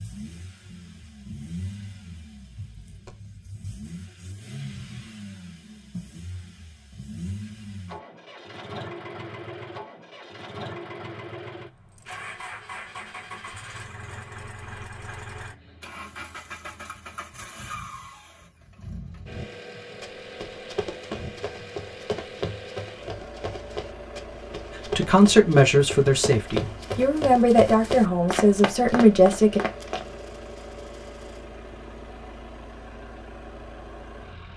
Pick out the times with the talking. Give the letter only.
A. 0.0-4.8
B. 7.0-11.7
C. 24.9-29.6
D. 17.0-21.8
C.